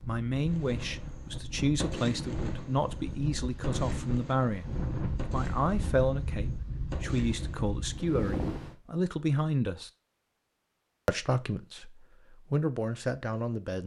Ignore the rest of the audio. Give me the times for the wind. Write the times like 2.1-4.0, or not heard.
0.0-8.8.